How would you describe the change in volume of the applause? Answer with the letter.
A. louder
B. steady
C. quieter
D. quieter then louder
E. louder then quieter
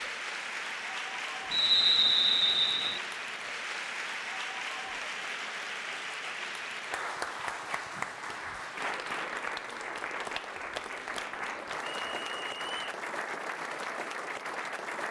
B.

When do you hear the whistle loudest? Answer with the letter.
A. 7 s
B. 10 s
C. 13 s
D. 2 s
D.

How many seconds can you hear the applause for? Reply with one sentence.
You can hear the applause for 15 seconds altogether.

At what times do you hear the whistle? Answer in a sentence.
The whistle can be heard from 1.5 to 3.0 s and from 12.0 to 12.9 s.